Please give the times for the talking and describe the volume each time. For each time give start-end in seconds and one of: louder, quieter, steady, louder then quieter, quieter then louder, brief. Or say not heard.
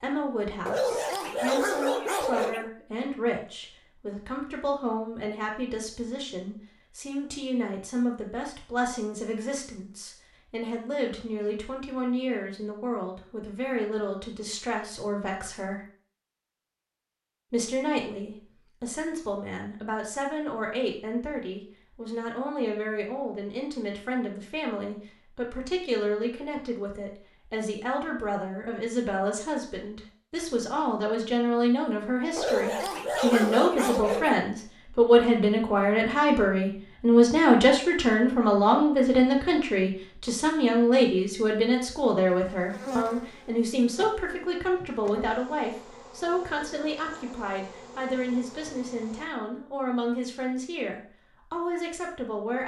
0.0-15.8 steady
17.5-52.6 louder then quieter.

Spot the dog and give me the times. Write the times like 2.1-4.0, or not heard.
0.7-2.7, 32.4-34.5.